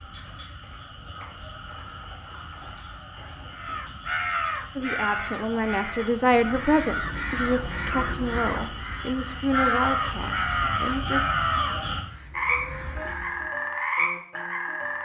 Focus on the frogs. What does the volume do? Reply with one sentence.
The loudness of the frogs goes up.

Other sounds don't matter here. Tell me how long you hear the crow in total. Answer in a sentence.
The crow can be heard for 10 seconds in total.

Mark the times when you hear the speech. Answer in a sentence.
The speech can be heard from 4.8 to 11.2 s.